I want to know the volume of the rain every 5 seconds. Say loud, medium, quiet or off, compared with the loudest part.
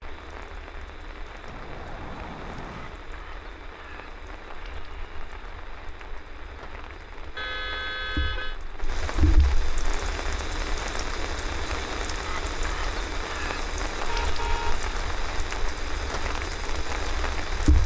medium, medium, loud, loud.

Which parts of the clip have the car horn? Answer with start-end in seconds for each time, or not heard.
1.4-3.0, 7.3-8.6, 14.1-14.8.